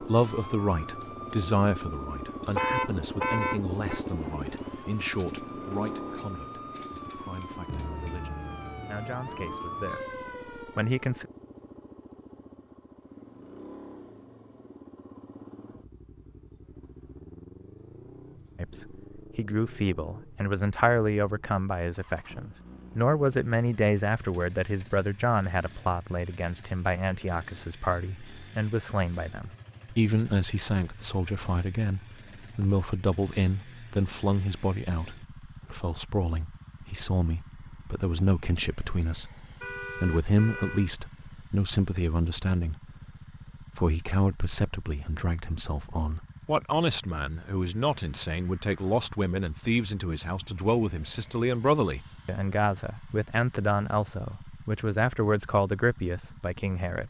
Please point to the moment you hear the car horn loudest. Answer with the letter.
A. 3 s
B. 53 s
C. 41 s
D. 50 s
A.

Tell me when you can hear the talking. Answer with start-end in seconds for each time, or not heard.
0.0-11.2, 18.6-42.9, 43.6-57.0.